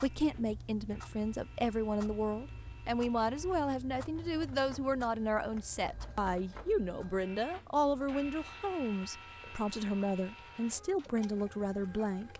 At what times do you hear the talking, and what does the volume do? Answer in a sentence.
You can hear the talking from 0.0 to 12.3 s, at a steady volume.